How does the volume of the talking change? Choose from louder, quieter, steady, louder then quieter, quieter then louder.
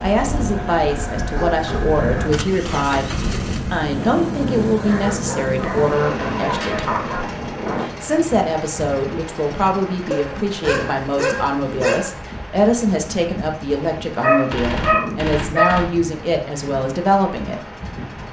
steady.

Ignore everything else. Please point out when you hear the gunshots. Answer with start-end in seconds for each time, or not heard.
14.5-15.9.